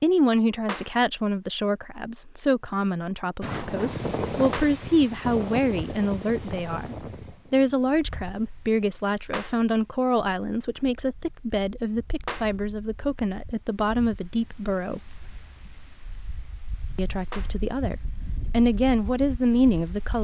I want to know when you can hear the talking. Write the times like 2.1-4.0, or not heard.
0.0-15.2, 16.9-20.1.